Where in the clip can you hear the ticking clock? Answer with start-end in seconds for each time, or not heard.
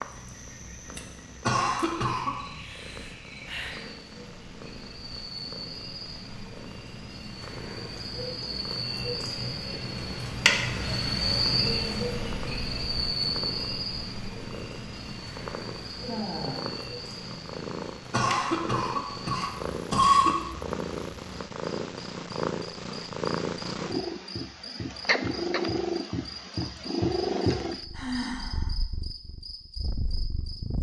not heard.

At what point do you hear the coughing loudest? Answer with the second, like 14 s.
20 s.